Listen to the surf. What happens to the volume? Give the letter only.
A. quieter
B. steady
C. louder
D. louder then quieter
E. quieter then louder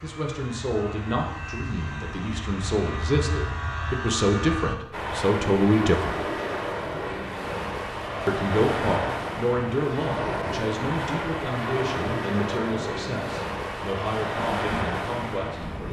B.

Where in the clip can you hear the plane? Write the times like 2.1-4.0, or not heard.
0.0-4.8.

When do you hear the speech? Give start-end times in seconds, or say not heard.
0.0-6.2, 8.2-15.8.